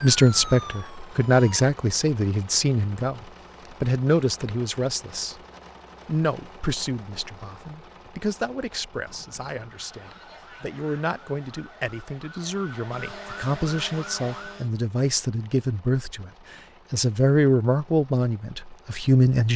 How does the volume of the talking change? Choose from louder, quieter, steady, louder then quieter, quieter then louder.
quieter then louder.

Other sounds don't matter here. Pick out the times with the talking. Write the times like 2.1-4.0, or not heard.
0.0-5.4, 6.0-19.5.